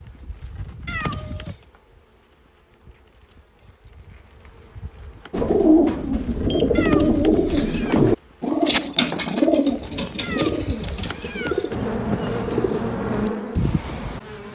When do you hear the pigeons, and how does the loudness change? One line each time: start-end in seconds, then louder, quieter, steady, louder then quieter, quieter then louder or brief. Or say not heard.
5.3-12.8 quieter.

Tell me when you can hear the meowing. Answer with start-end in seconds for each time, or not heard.
0.8-1.6, 6.8-8.0, 10.2-11.9.